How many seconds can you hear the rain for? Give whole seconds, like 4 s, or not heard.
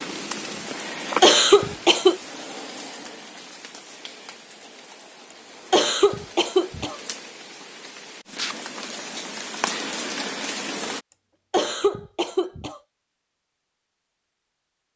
11 s.